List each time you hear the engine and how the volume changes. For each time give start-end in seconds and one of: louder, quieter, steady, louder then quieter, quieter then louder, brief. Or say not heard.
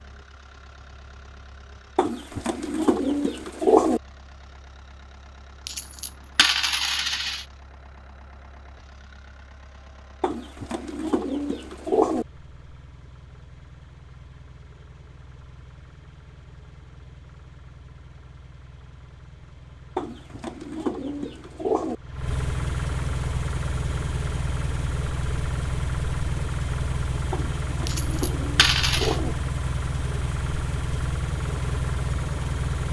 0.0-32.8 louder.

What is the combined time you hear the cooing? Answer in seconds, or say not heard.
8 s.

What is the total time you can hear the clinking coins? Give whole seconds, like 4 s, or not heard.
3 s.